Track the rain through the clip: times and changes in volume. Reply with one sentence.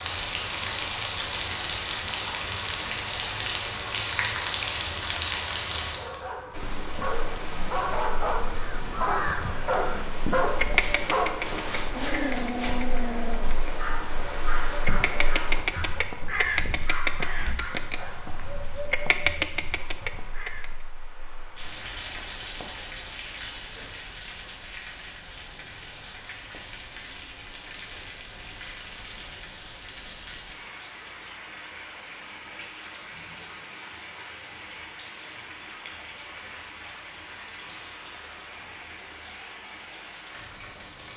You can hear the rain from 0.0 to 41.1 s, getting quieter.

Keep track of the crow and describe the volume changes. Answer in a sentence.
The volume of the crow goes down, then up.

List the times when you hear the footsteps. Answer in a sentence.
You can't hear the footsteps here.